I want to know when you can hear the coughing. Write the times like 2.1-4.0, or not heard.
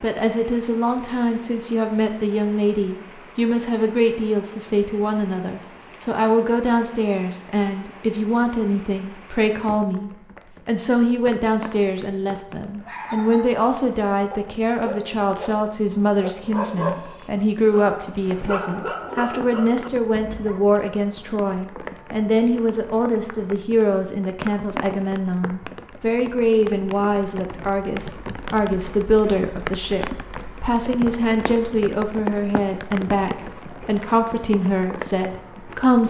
not heard.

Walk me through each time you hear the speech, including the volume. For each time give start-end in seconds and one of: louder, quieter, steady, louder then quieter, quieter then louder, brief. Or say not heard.
0.0-36.0 steady.